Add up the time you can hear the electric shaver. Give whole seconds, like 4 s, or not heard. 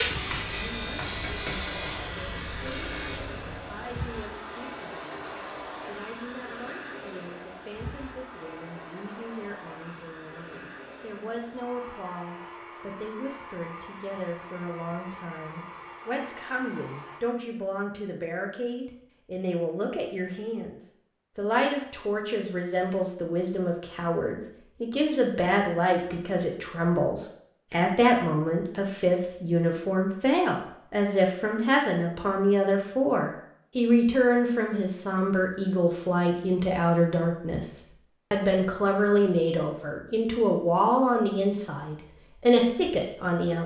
4 s.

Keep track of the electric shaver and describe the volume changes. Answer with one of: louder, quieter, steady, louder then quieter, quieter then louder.
quieter.